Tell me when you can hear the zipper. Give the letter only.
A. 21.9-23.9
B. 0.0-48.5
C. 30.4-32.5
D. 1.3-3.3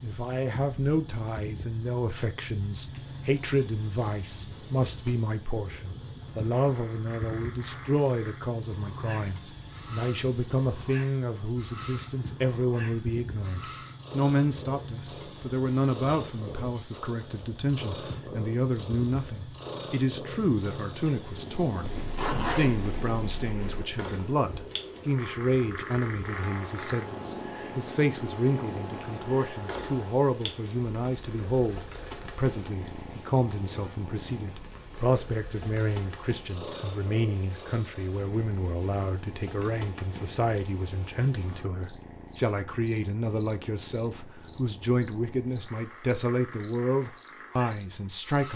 A.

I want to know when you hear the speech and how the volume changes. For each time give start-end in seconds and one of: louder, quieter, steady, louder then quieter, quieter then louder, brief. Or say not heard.
0.0-48.5 steady.